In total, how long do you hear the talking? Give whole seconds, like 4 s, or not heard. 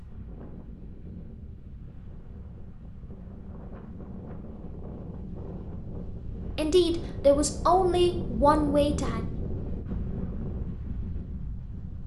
3 s.